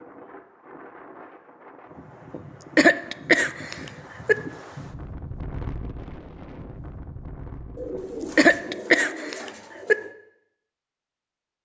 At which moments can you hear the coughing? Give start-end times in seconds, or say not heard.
2.3-4.3, 8.0-9.9.